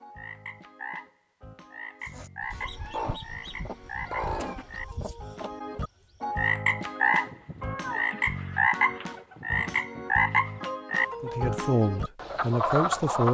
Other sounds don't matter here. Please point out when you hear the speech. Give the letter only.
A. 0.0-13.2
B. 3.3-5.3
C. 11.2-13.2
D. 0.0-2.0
C.